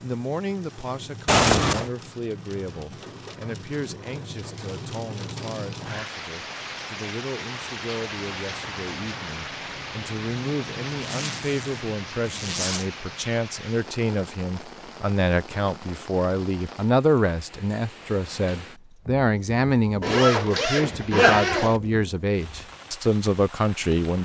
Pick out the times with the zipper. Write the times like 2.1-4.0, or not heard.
1.2-1.9, 10.8-12.8, 20.0-21.8.